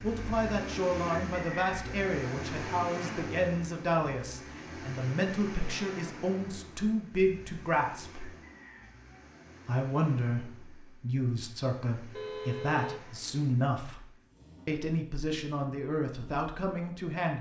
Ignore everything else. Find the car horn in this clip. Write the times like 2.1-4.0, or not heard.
12.1-13.2.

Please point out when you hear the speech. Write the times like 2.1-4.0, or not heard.
0.0-8.2, 9.7-14.1, 14.7-17.3.